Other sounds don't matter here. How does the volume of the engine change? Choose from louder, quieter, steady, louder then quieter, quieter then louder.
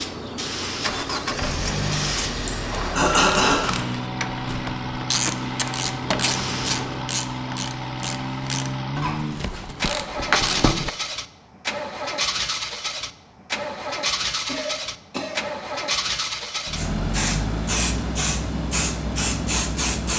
steady.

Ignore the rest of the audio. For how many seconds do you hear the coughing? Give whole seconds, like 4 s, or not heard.
3 s.